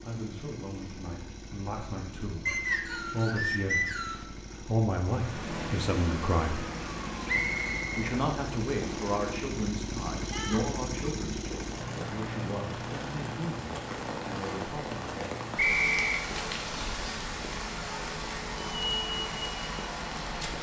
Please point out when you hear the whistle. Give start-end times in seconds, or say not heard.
2.5-4.2, 7.2-7.9, 15.6-16.2.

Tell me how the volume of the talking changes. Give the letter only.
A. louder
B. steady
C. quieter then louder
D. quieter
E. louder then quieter
E.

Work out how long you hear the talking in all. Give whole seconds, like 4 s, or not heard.
14 s.